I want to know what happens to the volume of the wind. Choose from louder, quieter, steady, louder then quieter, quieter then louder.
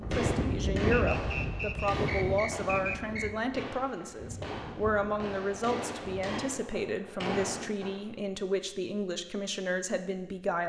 quieter.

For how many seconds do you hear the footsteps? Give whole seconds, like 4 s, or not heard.
not heard.